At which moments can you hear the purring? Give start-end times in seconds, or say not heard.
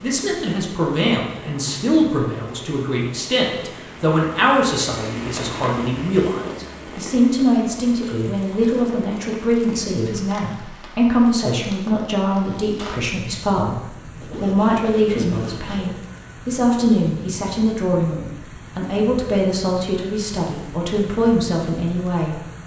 not heard.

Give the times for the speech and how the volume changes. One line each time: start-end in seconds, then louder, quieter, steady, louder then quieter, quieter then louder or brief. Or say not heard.
0.0-22.4 steady.